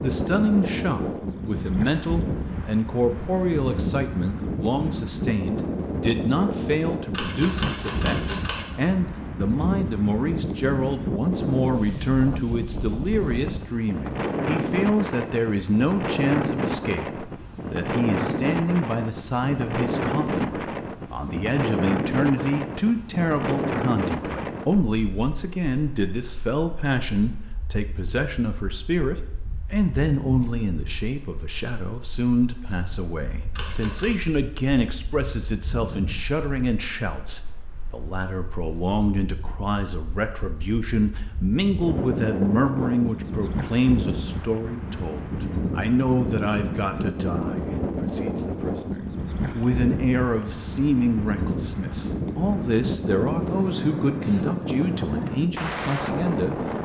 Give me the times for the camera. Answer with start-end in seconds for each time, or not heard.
7.1-8.7, 33.5-34.1.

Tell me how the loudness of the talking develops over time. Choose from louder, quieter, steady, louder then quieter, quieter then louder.
steady.